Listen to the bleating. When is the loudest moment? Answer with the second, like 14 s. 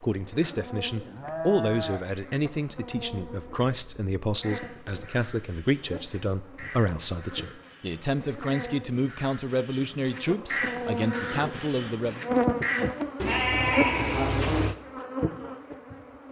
14 s.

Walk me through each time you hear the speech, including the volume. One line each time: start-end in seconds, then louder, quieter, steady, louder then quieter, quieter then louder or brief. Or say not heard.
0.0-12.2 steady.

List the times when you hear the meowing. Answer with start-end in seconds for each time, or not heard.
not heard.